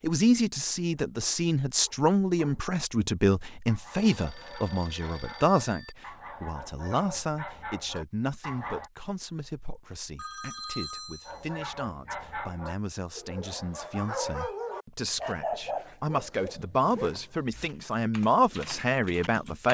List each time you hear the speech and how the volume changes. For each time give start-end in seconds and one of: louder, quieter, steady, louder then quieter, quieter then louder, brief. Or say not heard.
0.0-19.6 quieter then louder.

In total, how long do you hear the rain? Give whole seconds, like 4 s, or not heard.
not heard.